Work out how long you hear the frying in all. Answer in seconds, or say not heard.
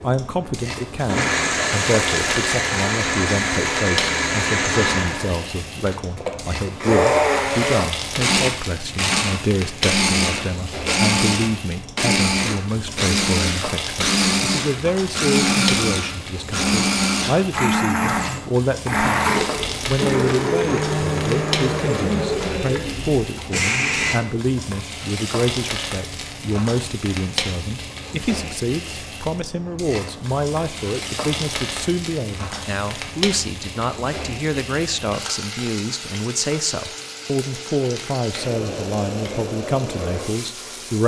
41 s.